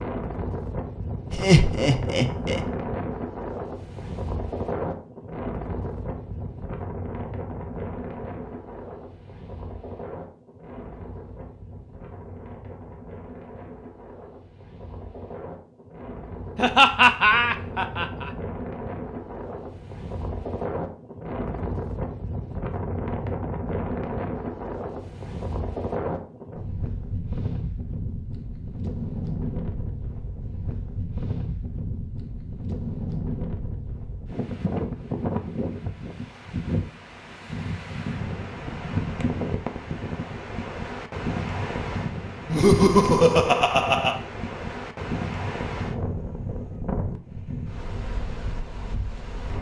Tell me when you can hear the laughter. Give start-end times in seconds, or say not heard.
1.3-2.6, 16.6-18.3, 42.5-44.2.